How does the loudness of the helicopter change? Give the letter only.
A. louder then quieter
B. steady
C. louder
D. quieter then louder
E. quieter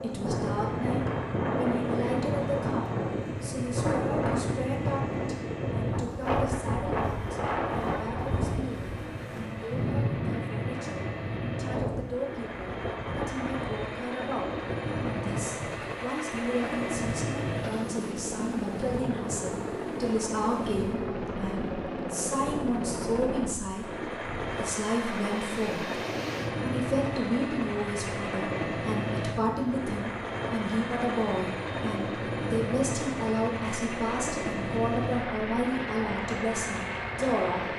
C.